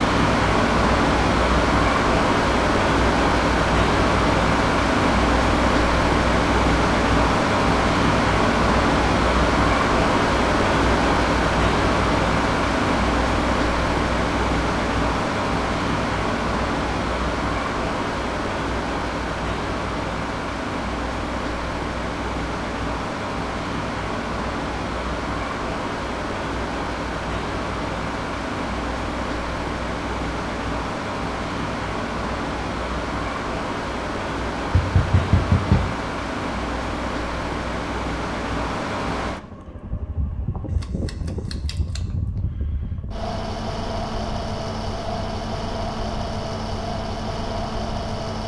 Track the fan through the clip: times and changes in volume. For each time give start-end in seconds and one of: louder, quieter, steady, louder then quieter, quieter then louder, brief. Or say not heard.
0.0-48.4 quieter.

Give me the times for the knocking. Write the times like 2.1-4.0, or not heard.
34.7-35.9.